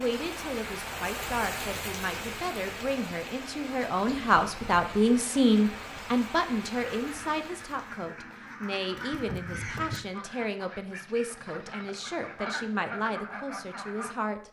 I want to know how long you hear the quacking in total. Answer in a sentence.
You can hear the quacking for 8 seconds altogether.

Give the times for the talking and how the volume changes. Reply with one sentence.
You can hear the talking from 0.0 to 14.4 s, getting louder then quieter.